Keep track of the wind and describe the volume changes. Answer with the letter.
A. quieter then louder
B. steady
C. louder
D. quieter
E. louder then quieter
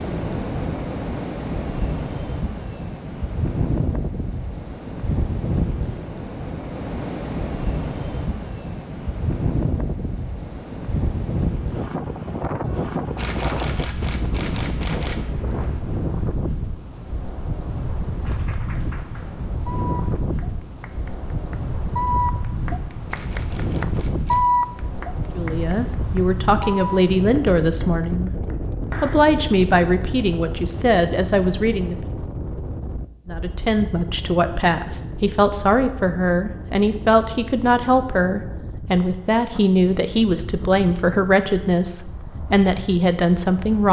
D.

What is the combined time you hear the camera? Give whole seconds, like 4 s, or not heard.
4 s.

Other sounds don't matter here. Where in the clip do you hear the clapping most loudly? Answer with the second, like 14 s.
24 s.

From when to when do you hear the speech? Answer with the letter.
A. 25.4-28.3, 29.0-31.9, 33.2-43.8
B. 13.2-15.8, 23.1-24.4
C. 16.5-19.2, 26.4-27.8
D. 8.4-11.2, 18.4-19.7
A.